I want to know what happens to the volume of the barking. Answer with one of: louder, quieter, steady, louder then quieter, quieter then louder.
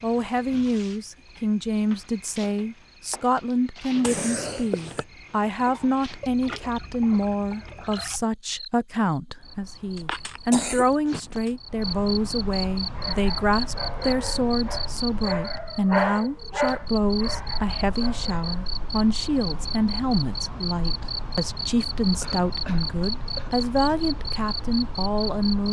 louder then quieter.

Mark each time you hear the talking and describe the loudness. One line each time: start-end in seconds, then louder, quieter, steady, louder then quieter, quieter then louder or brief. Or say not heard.
0.0-25.6 steady.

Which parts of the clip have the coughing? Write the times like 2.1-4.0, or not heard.
4.0-5.0, 9.9-11.5, 22.2-23.6.